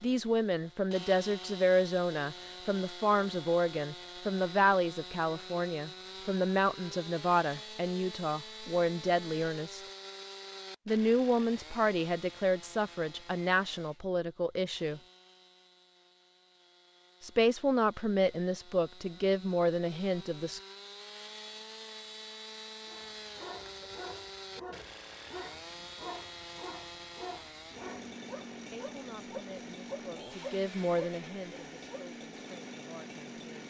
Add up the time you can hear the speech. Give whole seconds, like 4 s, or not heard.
22 s.